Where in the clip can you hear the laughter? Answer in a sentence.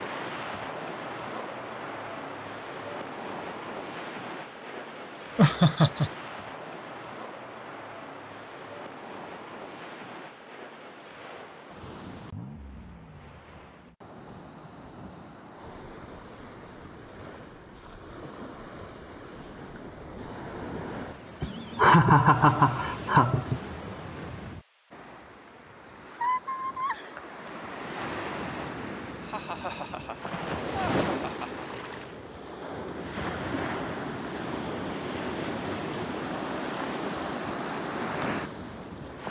The laughter can be heard from 5.3 to 6.1 s, from 21.4 to 23.6 s and from 29.2 to 31.6 s.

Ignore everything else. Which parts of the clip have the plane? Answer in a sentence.
You can't hear the plane here.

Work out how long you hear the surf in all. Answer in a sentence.
The surf can be heard for 39 seconds in total.